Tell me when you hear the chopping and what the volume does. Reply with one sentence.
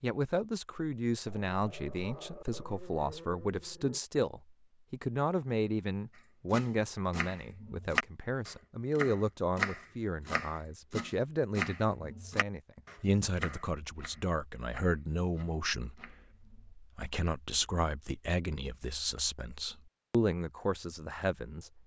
You can hear the chopping from 6.5 to 16.8 s, getting quieter.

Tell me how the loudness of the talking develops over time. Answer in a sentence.
The loudness of the talking stays about the same.